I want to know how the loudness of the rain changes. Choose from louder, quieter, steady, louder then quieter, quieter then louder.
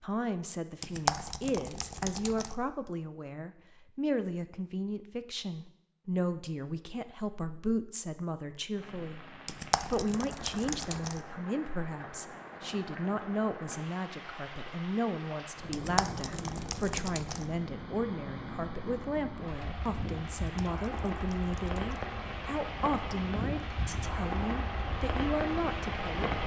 louder.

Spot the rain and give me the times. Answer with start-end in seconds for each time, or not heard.
8.7-26.4.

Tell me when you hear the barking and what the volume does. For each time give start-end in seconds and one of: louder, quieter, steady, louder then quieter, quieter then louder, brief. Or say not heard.
not heard.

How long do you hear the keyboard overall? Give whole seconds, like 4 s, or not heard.
7 s.